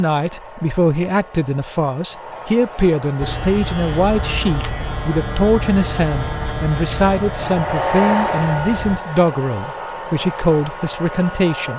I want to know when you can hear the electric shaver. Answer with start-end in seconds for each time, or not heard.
3.2-9.0.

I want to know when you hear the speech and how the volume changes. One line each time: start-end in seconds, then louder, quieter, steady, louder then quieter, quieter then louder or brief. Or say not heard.
0.0-11.7 steady.